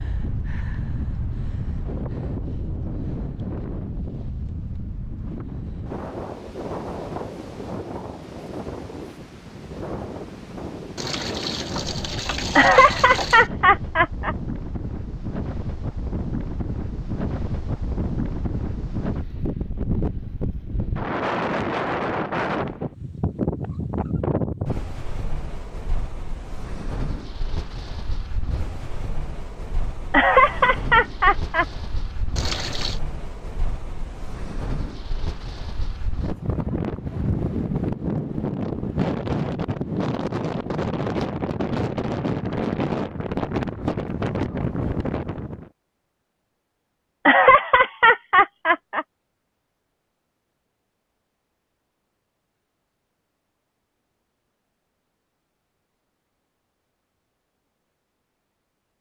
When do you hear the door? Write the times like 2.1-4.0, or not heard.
not heard.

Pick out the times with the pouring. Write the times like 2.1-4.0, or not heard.
10.9-13.5, 32.4-33.0.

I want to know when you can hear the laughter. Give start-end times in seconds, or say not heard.
12.6-14.3, 30.1-31.6, 47.2-49.0.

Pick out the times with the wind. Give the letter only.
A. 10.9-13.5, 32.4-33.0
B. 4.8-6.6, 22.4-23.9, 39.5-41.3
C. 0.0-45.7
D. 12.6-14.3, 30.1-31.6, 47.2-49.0
C.